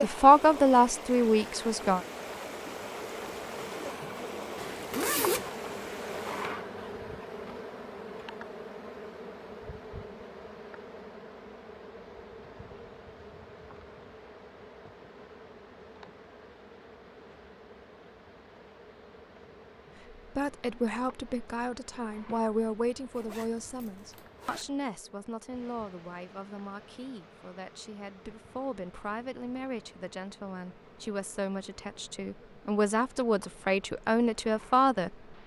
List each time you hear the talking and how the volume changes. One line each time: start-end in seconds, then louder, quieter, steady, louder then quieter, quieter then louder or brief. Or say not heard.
0.0-2.0 brief
20.4-35.1 quieter then louder.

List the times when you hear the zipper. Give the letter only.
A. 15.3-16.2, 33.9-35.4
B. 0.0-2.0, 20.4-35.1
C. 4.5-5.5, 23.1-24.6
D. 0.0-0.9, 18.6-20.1
C.